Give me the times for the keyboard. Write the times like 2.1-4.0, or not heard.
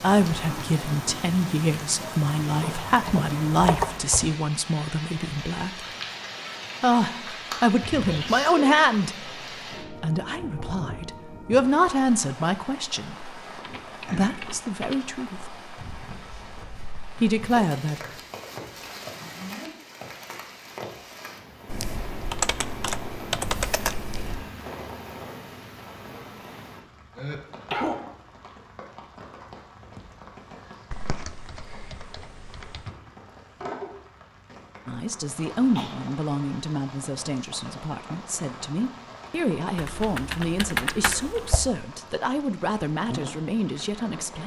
2.6-4.3, 13.6-15.1, 21.6-24.4, 30.9-33.0, 39.8-41.7.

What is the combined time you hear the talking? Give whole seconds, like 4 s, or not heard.
24 s.